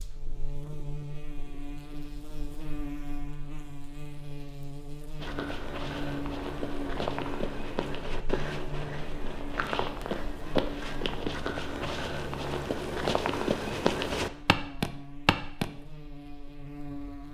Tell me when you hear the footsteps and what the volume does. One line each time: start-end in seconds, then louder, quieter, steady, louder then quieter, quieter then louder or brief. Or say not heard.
5.2-15.7 louder.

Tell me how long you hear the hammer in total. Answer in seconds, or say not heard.
not heard.